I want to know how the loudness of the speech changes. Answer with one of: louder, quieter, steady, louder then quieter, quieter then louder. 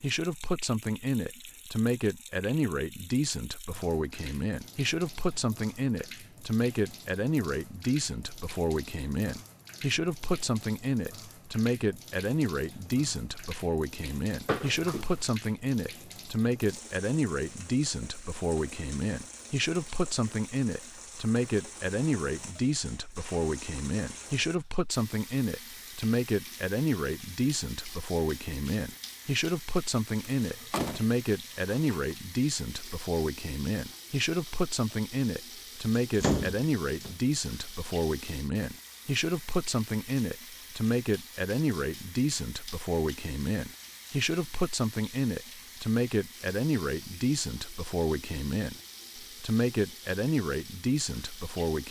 steady.